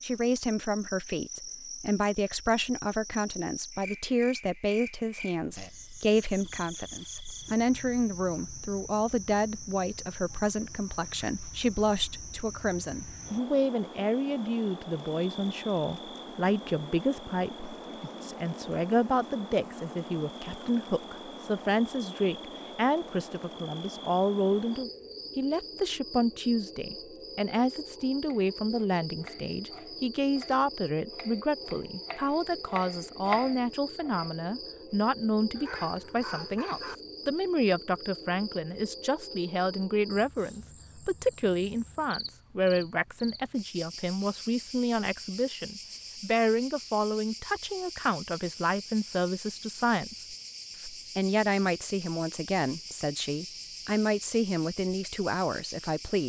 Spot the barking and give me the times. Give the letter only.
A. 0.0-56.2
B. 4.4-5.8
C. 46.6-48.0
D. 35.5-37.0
D.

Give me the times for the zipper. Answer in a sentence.
The zipper can't be heard in this clip.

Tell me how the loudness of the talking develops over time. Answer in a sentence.
The loudness of the talking stays about the same.